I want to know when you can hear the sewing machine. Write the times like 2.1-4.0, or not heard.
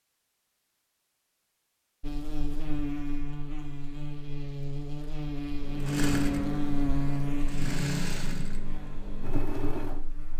5.6-10.3.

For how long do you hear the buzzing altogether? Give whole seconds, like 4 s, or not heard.
8 s.